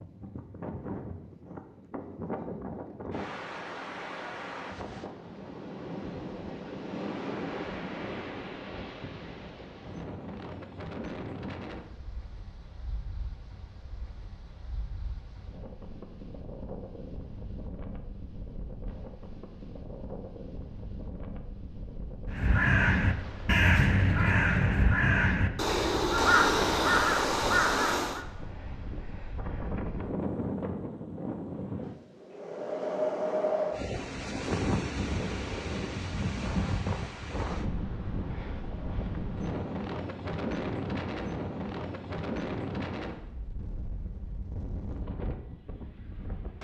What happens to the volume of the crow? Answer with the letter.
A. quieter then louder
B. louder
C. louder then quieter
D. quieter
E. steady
E.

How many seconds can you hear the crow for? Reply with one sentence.
You can hear the crow for 6 seconds altogether.